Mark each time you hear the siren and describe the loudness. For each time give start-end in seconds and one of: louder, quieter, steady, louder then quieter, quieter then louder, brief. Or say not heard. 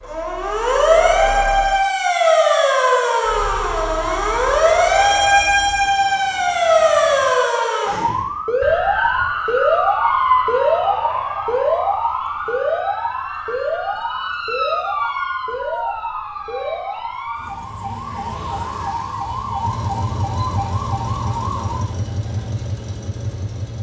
0.0-21.8 quieter.